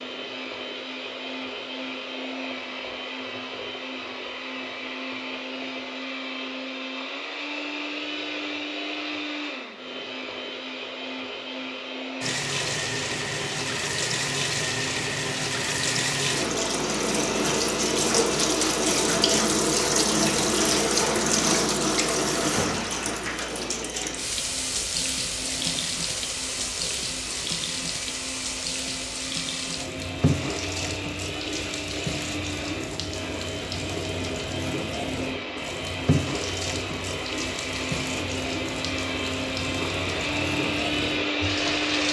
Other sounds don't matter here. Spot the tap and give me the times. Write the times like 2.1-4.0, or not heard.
12.2-42.0.